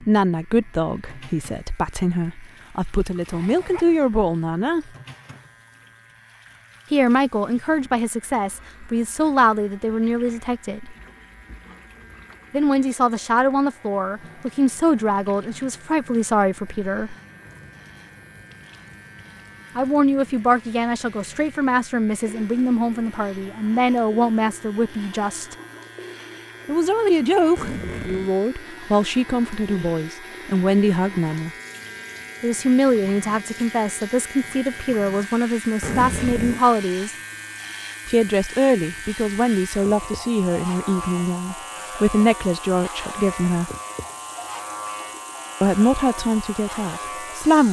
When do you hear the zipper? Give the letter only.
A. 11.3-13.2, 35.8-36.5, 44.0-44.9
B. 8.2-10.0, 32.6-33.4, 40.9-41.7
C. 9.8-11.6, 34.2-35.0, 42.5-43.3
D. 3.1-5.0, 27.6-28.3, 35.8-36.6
D.